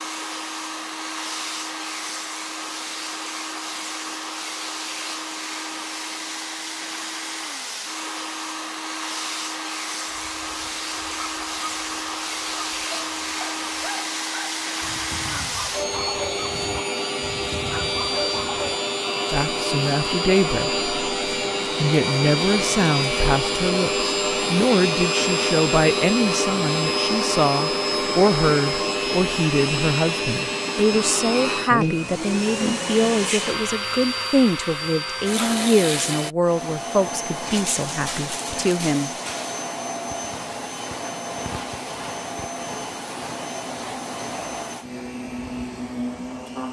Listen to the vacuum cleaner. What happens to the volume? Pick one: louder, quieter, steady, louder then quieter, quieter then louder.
louder then quieter.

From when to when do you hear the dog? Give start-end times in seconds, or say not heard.
10.1-18.8.